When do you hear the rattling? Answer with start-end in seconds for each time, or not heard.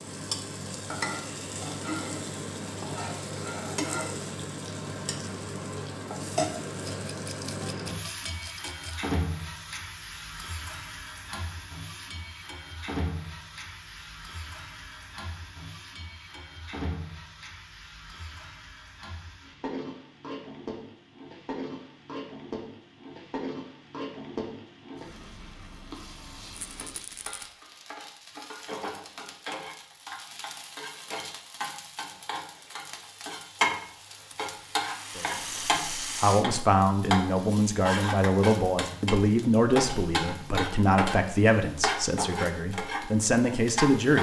6.8-8.9, 26.5-27.5, 34.3-36.5.